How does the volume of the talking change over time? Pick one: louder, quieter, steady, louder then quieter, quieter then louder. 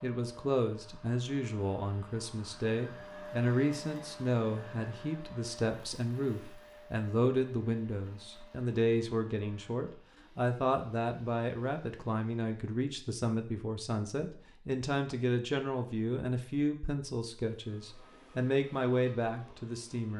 steady.